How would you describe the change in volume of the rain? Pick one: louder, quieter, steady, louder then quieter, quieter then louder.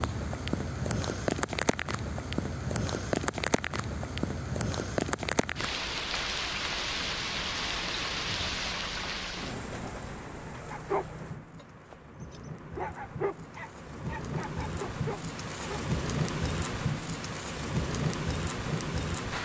quieter then louder.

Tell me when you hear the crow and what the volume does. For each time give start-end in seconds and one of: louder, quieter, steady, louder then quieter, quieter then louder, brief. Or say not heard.
not heard.